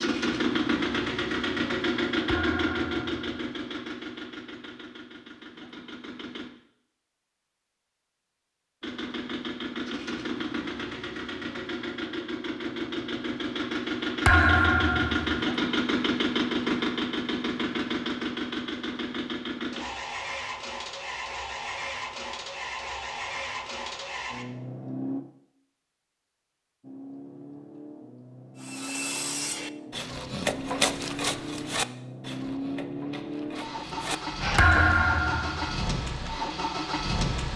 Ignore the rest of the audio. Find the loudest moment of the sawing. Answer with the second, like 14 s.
31 s.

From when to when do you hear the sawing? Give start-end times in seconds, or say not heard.
28.6-35.0.